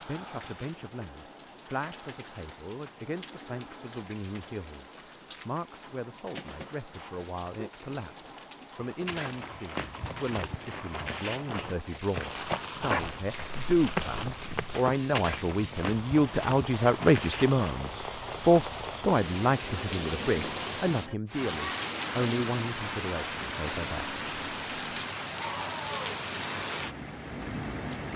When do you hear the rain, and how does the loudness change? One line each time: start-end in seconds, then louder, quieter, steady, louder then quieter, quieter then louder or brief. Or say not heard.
0.0-28.1 louder.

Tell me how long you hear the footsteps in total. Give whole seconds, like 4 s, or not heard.
9 s.